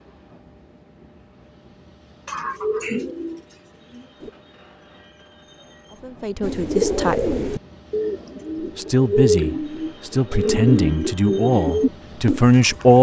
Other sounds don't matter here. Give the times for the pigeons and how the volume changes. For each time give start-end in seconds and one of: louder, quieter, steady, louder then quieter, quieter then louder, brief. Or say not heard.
2.2-4.3 brief
6.4-12.9 quieter then louder.